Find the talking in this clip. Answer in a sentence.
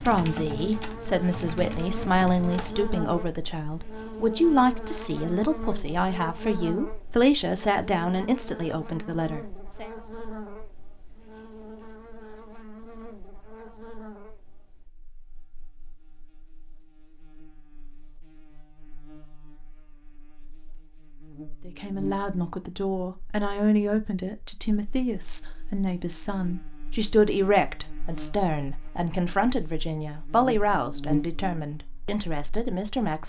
You can hear the talking from 0.0 to 9.9 s and from 21.6 to 33.2 s.